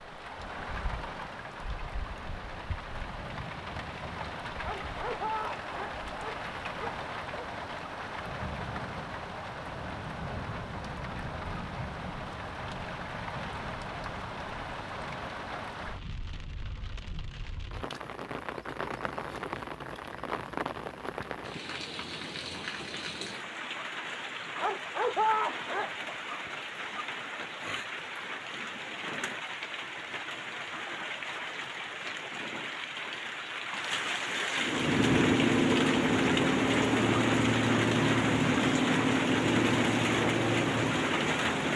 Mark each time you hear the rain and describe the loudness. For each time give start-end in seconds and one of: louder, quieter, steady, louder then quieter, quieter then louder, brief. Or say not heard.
0.0-41.7 louder.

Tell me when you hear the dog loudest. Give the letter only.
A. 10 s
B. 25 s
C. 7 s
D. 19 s
B.